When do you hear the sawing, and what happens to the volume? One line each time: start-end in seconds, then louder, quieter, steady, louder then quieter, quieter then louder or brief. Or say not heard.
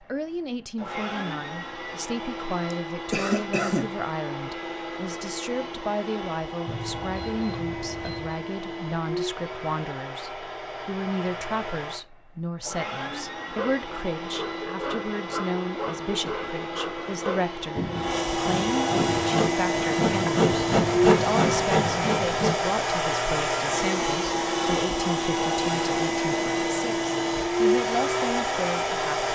13.4-22.6 louder.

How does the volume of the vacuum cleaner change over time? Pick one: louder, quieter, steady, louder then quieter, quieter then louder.
louder.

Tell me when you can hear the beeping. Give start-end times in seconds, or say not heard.
6.7-8.4.